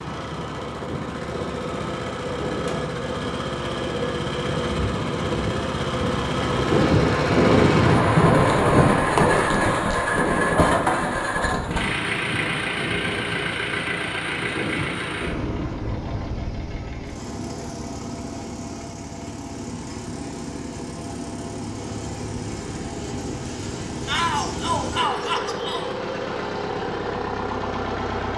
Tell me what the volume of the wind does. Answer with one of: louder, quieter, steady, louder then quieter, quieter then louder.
louder then quieter.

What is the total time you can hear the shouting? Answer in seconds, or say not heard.
2 s.